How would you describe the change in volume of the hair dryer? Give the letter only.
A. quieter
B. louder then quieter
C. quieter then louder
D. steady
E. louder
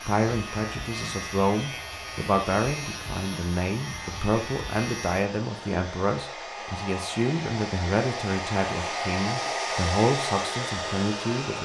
E.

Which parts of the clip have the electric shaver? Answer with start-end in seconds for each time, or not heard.
0.0-5.2.